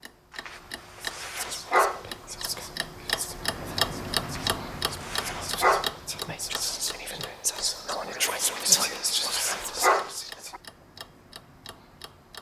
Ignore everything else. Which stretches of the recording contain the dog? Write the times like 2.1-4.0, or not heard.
0.5-2.0, 4.3-5.9, 8.4-10.6.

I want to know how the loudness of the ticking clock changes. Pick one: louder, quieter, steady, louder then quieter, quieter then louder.
louder then quieter.